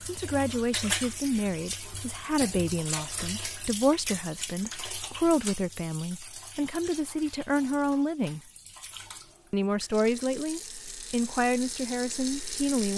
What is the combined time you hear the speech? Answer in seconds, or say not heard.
12 s.